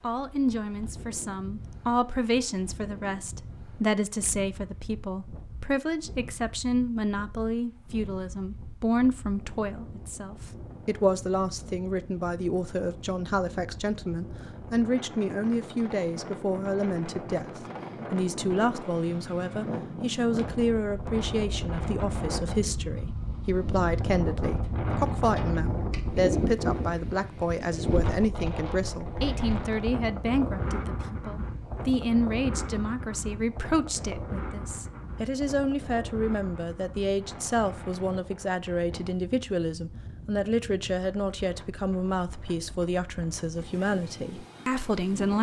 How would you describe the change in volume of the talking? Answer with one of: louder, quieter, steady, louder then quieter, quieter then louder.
steady.